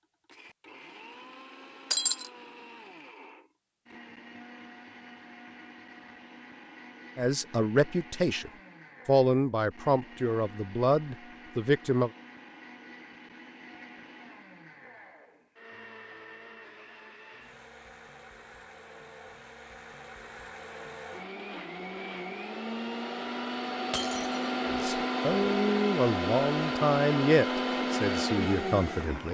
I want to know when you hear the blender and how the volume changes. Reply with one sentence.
You can hear the blender from 0.0 to 29.2 s, getting louder.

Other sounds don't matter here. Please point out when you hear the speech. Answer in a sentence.
You can hear the speech from 7.2 to 12.1 s and from 24.6 to 29.2 s.